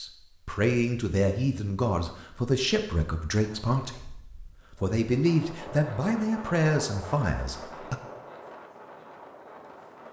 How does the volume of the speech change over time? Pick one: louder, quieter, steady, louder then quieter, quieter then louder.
steady.